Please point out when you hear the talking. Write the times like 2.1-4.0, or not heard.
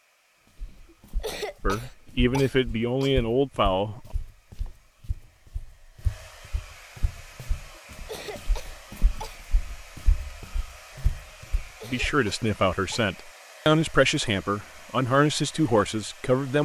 1.6-4.1, 11.8-16.6.